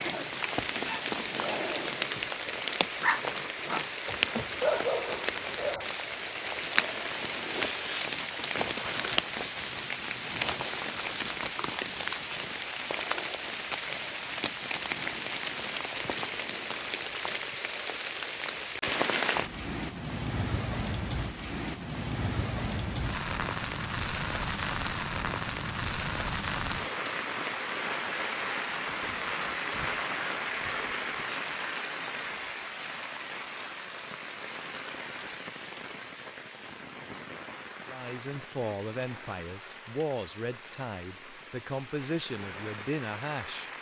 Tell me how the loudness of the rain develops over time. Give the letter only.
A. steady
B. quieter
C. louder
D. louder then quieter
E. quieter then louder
B.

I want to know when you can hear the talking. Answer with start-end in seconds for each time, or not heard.
37.9-43.7.